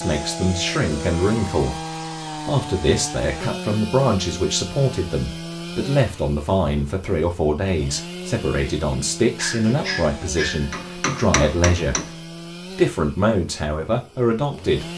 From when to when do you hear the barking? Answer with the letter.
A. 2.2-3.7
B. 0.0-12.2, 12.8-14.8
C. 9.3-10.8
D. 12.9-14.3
C.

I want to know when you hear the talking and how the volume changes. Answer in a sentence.
The talking can be heard from 0.0 to 12.2 s, at a steady volume; and briefly from 12.8 to 14.8 s.